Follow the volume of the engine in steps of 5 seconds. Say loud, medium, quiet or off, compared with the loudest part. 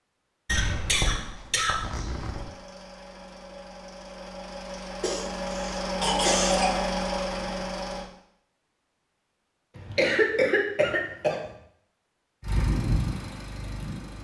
quiet, loud, loud.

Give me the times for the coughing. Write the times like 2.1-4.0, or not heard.
0.5-2.4, 5.0-6.8, 9.8-11.5.